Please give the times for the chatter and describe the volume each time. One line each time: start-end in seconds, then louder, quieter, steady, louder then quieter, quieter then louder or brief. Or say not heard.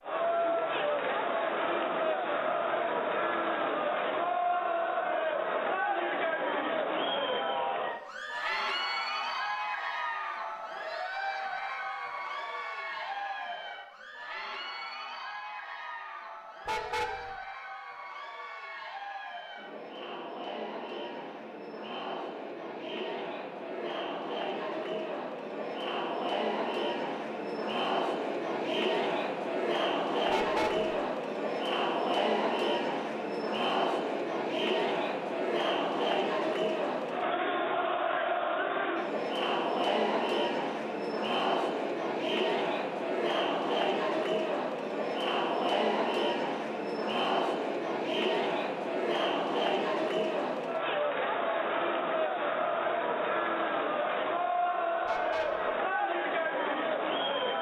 0.0-57.5 quieter then louder.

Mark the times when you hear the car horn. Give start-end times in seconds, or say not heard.
16.6-17.4, 30.2-30.9, 55.0-55.8.